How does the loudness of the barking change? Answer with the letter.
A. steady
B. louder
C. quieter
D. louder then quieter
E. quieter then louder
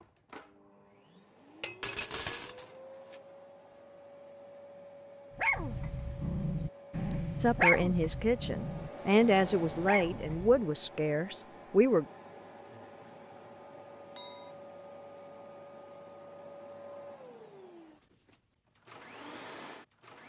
D.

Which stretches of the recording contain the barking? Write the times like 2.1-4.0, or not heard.
5.3-10.6.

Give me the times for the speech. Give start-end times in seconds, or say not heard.
7.4-12.1.